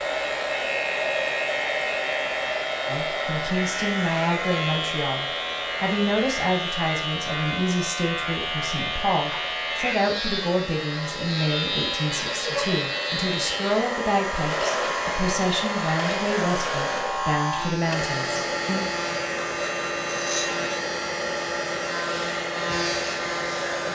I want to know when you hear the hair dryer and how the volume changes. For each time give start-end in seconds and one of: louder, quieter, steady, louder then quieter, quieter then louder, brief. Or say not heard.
0.0-23.9 quieter then louder.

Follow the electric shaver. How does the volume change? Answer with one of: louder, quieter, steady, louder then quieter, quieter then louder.
steady.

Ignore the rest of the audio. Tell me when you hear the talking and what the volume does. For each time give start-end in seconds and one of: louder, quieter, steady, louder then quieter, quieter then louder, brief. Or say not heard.
2.9-18.8 steady.